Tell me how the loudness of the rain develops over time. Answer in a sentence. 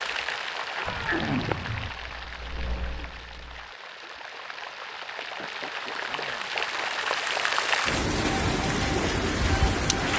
The volume of the rain goes down, then up.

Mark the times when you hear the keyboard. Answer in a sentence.
You can hear the keyboard from 1.8 to 3.8 s.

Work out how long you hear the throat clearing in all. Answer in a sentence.
The throat clearing can be heard for 2 seconds in total.